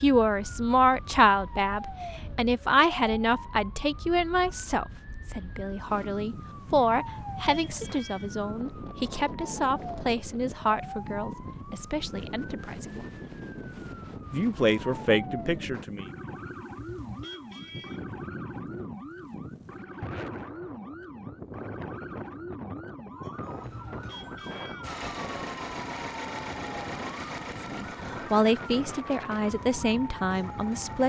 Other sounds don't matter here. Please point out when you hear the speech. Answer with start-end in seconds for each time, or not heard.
0.0-13.1, 14.3-16.1, 27.7-31.0.